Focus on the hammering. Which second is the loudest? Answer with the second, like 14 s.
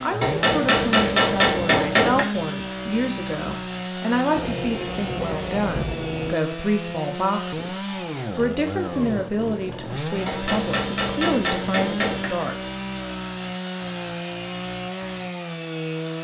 1 s.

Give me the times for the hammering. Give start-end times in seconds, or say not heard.
0.2-2.2, 10.2-12.2.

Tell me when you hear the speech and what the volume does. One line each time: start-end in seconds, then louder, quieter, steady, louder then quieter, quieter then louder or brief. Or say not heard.
0.0-12.7 steady.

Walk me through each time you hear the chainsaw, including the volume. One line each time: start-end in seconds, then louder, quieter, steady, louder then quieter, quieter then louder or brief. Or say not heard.
0.0-16.1 steady.